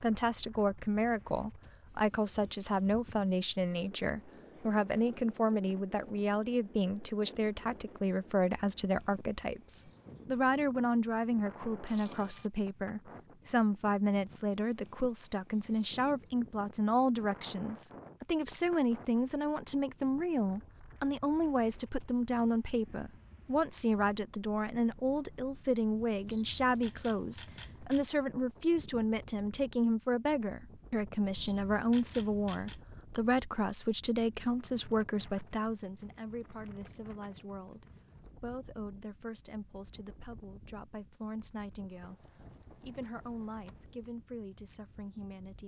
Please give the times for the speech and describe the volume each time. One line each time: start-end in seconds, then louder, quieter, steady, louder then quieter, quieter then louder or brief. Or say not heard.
0.0-45.6 quieter.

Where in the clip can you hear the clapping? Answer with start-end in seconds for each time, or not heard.
not heard.